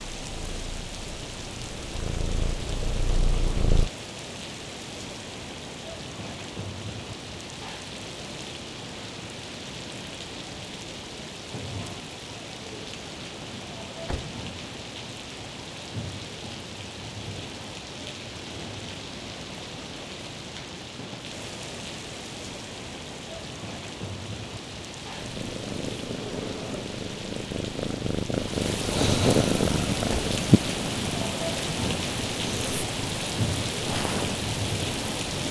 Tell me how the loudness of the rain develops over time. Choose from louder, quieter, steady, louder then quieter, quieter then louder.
louder.